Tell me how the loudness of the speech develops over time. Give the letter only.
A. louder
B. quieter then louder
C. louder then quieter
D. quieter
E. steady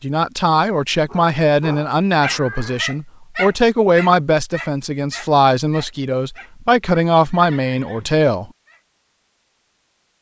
E.